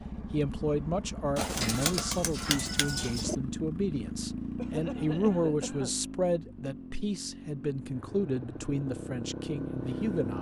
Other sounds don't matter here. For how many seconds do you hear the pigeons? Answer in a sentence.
You can hear the pigeons for 2 seconds altogether.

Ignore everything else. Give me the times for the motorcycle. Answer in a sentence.
You can hear the motorcycle from 0.0 to 10.3 s.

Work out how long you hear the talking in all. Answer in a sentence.
The talking can be heard for 10 seconds in total.